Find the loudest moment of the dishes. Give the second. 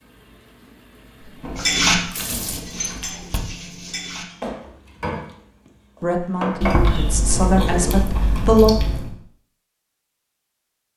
2 s.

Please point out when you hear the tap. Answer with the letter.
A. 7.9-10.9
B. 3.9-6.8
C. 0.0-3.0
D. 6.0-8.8
C.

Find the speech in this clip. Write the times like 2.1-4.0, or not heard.
6.0-8.8.